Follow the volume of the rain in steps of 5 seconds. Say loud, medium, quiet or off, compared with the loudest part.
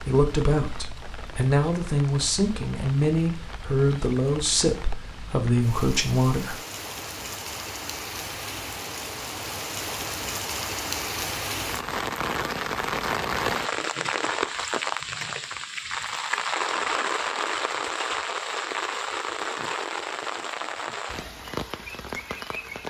quiet, medium, loud, loud, medium.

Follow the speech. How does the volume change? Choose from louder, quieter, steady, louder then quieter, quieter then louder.
steady.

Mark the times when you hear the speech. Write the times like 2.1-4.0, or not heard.
0.0-6.5.